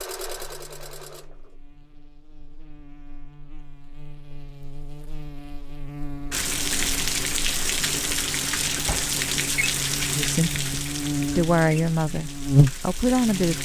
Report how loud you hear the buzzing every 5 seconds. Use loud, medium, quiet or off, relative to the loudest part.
quiet, quiet, loud.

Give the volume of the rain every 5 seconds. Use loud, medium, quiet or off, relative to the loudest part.
off, loud, medium.